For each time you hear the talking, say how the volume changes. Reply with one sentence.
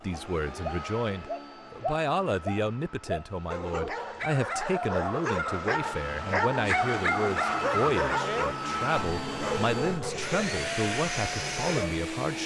You can hear the talking from 0.0 to 12.4 s, at a steady volume.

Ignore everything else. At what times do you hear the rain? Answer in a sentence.
The rain can't be heard in this clip.